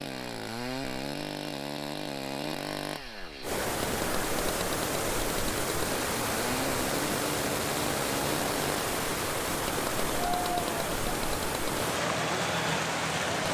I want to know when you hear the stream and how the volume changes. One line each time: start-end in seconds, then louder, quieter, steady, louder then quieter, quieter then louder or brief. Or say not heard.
3.4-13.4 steady.